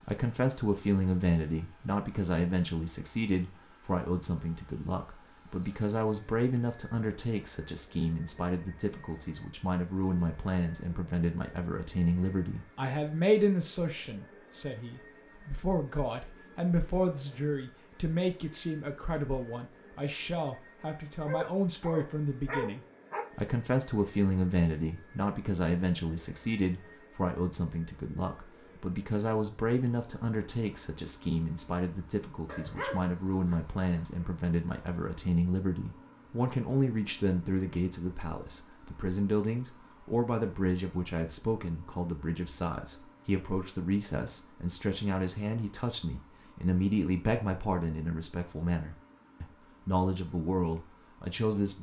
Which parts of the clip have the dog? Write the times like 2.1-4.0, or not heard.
21.2-23.2, 32.5-34.0.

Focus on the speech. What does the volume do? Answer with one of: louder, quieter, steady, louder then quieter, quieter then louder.
steady.